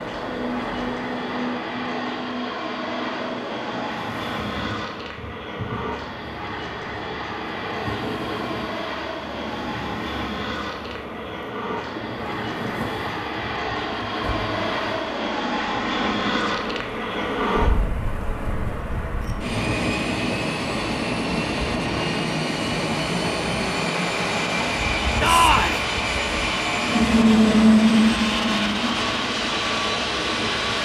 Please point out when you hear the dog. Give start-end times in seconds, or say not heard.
not heard.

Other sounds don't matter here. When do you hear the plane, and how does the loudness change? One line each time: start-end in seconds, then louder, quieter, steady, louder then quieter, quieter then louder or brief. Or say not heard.
0.0-30.8 louder.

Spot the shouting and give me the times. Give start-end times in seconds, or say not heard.
25.2-25.8.